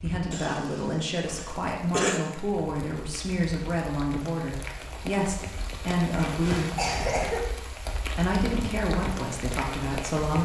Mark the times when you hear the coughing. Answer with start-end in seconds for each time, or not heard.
0.3-2.2, 6.2-7.4.